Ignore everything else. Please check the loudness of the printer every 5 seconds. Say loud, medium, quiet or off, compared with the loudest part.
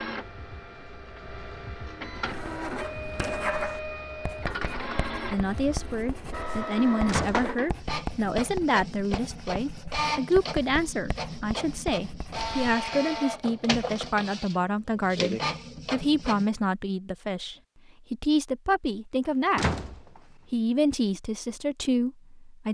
loud, loud, loud, loud, off.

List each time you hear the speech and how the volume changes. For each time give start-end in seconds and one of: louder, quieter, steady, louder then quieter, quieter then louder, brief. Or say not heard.
5.3-19.8 steady
20.5-22.6 brief.